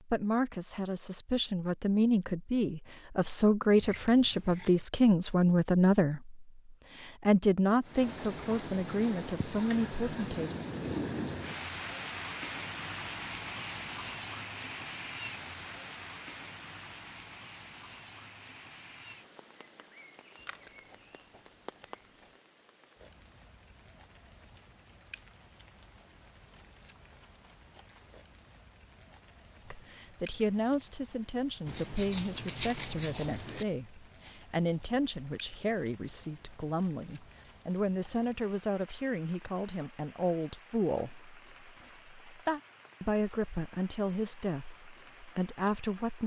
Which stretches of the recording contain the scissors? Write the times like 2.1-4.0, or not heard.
3.8-4.8, 20.4-22.3, 31.6-33.6.